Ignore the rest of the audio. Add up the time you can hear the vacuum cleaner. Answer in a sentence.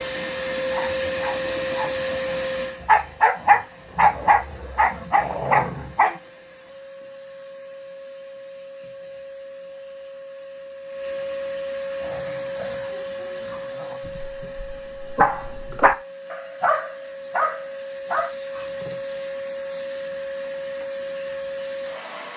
You can hear the vacuum cleaner for 22 seconds altogether.